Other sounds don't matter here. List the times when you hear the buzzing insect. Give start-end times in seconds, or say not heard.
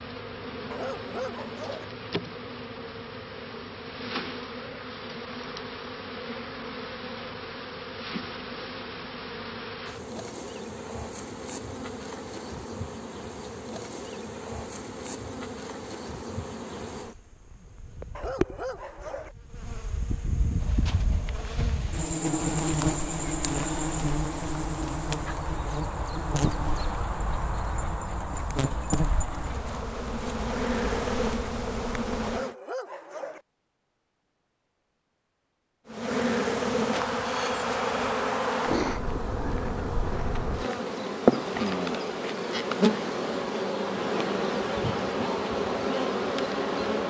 0.0-32.5, 35.9-47.0.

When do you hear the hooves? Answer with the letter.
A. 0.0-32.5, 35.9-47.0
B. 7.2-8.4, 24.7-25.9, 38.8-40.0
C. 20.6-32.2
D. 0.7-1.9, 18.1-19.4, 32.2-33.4
C.